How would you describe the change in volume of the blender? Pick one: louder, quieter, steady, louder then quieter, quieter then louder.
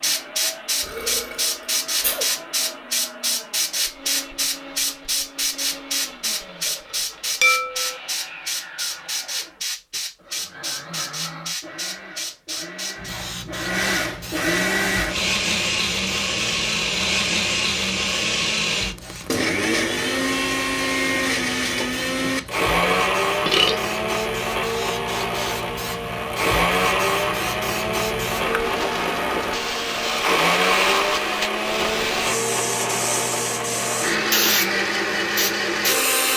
louder.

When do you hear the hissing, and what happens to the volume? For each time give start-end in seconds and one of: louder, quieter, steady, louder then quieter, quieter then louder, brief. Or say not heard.
0.0-36.3 quieter then louder.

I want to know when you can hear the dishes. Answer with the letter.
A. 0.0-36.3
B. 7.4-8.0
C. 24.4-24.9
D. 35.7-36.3
B.